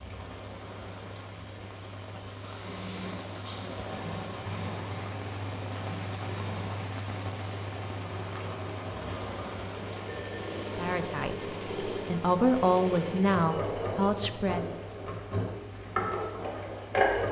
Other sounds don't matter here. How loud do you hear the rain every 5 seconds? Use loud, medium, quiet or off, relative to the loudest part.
loud, loud, medium, medium.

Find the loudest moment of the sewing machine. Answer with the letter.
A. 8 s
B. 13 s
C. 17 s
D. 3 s
C.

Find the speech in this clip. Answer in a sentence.
You can hear the speech from 10.8 to 14.8 s.